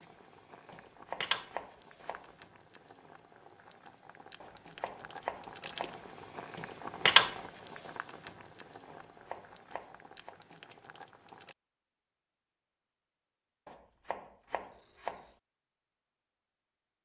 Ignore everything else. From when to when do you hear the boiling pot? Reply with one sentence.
You can hear the boiling pot from 0.0 to 11.6 s.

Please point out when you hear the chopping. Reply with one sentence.
You can hear the chopping from 0.7 to 2.4 s, from 4.4 to 6.0 s, from 8.8 to 10.3 s and from 13.7 to 15.3 s.